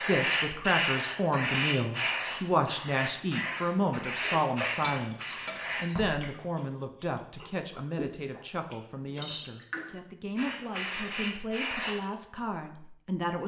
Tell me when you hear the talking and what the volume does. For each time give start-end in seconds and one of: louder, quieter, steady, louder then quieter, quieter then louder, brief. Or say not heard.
0.1-13.4 quieter.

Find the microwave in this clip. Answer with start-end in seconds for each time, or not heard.
not heard.